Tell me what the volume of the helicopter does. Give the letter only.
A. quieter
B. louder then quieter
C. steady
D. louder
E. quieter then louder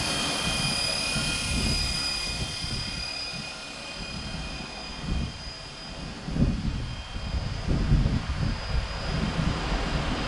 A.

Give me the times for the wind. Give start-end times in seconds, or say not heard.
0.0-10.2.